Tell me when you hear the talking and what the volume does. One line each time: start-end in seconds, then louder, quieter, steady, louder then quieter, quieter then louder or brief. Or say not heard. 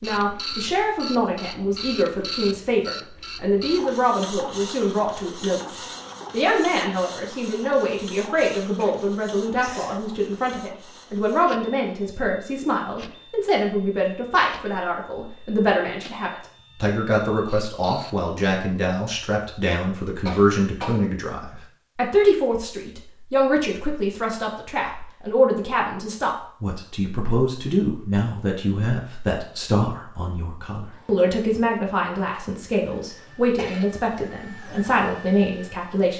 0.0-36.1 steady.